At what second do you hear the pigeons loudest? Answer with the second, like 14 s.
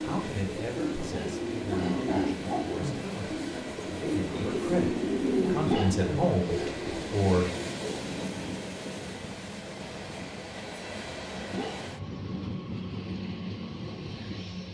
5 s.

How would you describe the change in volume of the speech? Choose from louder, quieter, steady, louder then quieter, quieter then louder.
louder.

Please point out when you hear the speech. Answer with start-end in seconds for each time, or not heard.
0.0-7.5.